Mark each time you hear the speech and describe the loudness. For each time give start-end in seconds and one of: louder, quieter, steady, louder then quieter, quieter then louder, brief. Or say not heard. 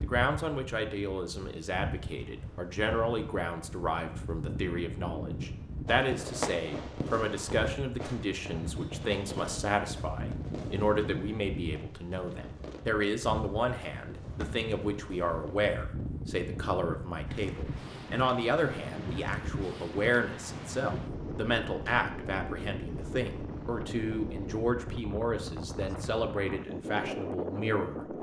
0.0-28.1 steady.